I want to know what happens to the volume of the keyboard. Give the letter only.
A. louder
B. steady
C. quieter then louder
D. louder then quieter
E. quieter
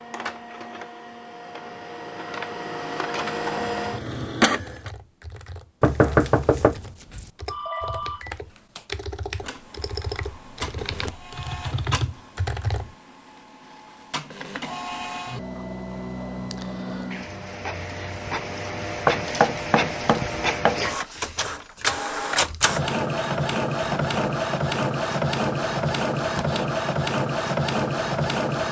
A.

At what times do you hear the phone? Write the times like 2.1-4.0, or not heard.
7.5-8.8.